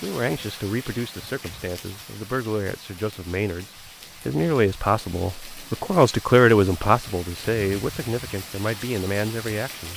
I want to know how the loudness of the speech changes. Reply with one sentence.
The loudness of the speech goes up, then down.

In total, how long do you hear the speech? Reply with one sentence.
You can hear the speech for 10 seconds altogether.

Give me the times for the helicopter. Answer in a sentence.
The helicopter can't be heard in this clip.